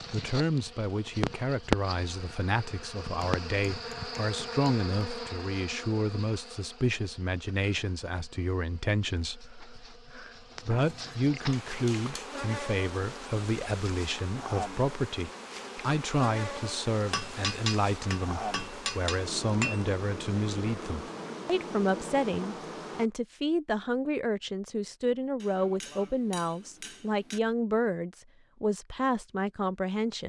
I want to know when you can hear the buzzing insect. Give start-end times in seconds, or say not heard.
0.0-23.1.